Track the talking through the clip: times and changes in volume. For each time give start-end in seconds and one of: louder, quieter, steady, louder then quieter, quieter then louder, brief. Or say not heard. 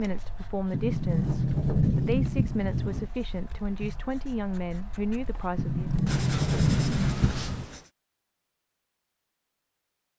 0.0-5.9 steady.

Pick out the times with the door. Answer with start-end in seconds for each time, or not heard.
0.7-3.1, 5.5-7.7.